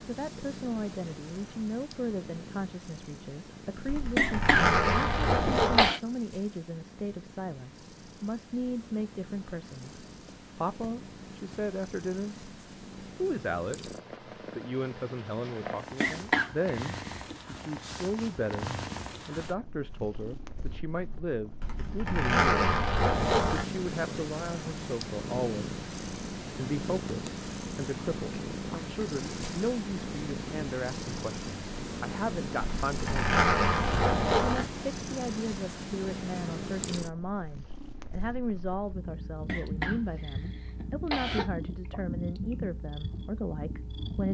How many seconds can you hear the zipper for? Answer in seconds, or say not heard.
6 s.